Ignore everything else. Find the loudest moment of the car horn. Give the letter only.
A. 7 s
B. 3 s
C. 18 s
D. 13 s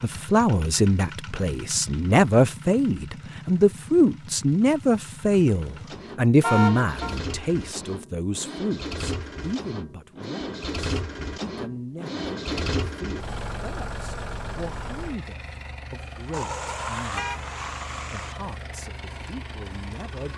A.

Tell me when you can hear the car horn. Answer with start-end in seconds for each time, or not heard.
6.4-7.2, 16.3-18.4.